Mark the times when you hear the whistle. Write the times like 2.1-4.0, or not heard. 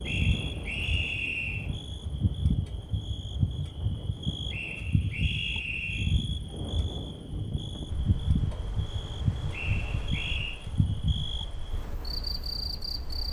0.1-1.7, 4.5-6.2, 9.5-10.6.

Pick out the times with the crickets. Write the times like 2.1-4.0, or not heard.
0.0-13.2.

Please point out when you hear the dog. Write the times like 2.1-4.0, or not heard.
not heard.